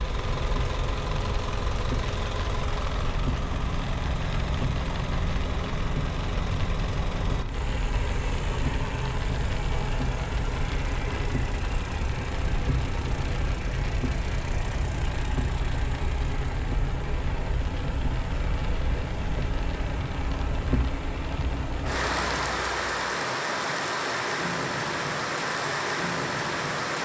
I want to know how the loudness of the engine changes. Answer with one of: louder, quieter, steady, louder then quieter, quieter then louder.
steady.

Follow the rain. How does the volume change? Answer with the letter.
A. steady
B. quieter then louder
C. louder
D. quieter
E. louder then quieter
C.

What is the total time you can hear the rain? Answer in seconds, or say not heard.
27 s.